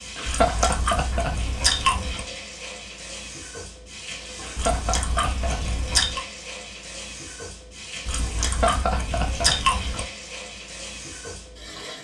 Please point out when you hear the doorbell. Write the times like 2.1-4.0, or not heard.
not heard.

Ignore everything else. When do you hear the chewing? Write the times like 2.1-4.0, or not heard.
0.2-2.2, 4.5-6.2, 8.1-10.1.